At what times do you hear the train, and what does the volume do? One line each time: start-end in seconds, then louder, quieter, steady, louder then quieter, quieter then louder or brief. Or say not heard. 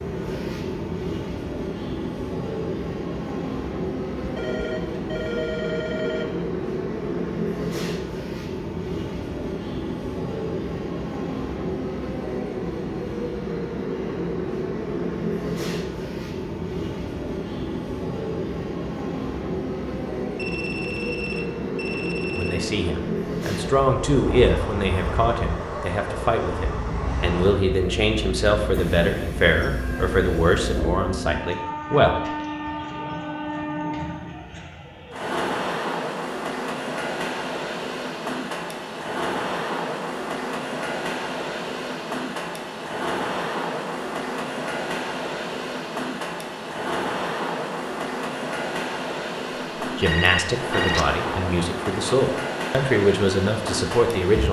0.0-54.4 steady.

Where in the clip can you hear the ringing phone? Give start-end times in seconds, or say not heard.
4.2-6.2, 20.4-22.7, 50.0-51.1.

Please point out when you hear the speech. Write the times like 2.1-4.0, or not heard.
22.4-32.2, 49.8-54.4.